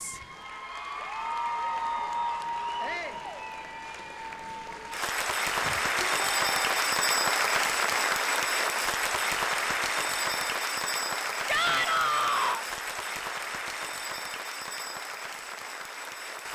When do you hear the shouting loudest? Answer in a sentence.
The volume of the shouting peaks at 12 seconds.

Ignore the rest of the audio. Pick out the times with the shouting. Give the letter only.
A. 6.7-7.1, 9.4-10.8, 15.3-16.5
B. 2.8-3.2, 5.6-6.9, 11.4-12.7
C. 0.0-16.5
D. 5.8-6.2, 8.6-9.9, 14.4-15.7
B.